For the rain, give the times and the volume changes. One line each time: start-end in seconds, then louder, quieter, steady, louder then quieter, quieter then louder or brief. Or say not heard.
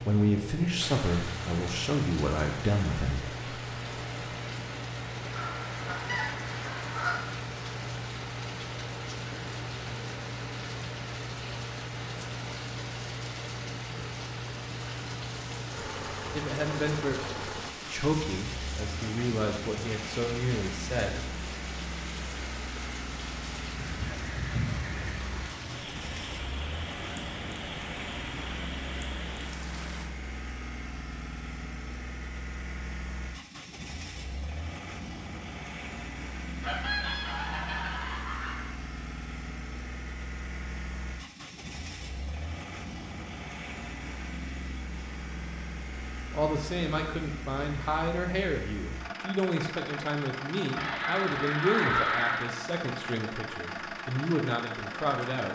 0.0-30.1 steady.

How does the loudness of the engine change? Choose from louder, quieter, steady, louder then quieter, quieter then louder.
steady.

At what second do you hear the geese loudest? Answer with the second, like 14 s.
52 s.